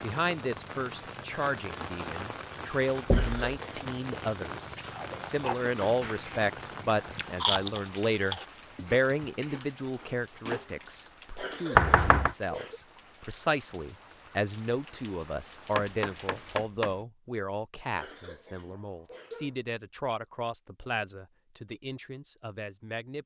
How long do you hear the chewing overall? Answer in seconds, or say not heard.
6 s.